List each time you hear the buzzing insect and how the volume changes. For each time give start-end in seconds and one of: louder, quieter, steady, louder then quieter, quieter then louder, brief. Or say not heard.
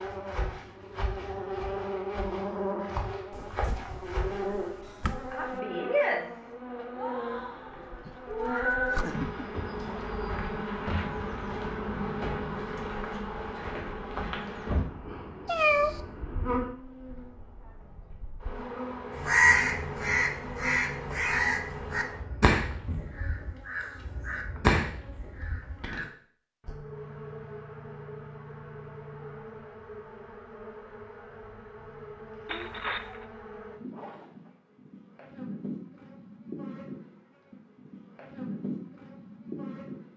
0.0-40.1 quieter.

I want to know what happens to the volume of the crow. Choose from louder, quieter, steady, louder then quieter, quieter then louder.
quieter then louder.